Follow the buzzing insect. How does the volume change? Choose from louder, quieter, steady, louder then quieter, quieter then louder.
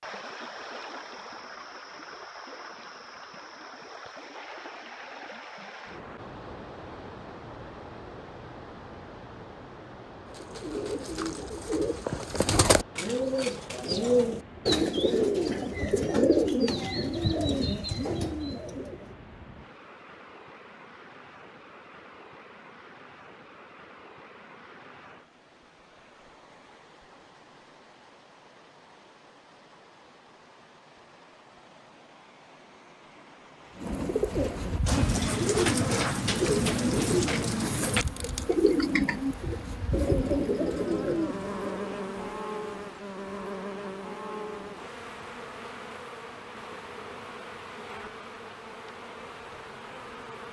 quieter.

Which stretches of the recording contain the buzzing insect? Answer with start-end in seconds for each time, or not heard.
33.8-50.4.